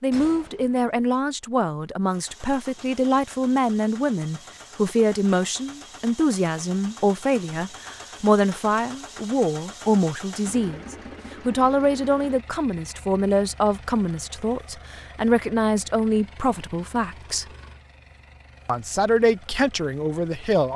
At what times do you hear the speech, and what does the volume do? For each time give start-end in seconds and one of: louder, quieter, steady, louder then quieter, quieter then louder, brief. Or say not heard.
0.0-17.4 steady
18.6-20.7 brief.